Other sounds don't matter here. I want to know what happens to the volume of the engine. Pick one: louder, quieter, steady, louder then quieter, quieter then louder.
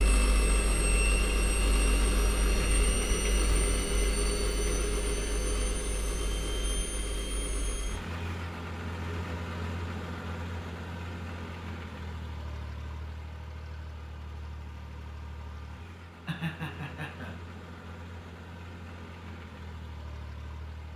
quieter.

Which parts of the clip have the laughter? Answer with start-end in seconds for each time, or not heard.
16.2-17.4.